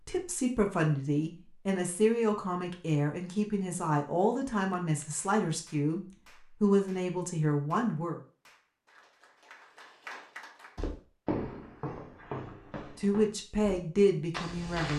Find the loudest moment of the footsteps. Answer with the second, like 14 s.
11 s.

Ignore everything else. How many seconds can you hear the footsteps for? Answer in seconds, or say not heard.
4 s.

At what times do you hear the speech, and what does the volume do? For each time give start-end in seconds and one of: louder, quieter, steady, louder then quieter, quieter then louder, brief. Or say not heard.
0.1-8.2 steady
12.8-14.9 brief.